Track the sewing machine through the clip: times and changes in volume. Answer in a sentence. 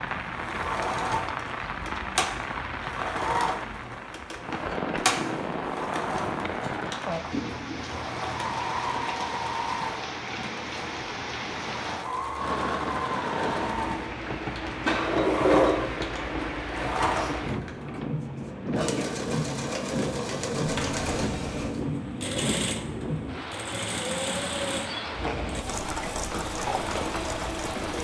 You can hear the sewing machine from 0.0 to 27.9 s, at a steady volume.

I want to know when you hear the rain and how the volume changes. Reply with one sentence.
You can hear the rain from 0.0 to 27.9 s, at a steady volume.